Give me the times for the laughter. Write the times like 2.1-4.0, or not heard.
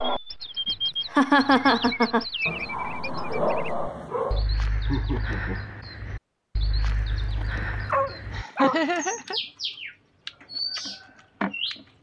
1.1-2.2, 4.7-5.6, 8.3-9.4.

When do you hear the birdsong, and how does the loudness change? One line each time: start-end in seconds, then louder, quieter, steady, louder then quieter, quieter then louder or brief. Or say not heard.
0.0-11.8 quieter then louder.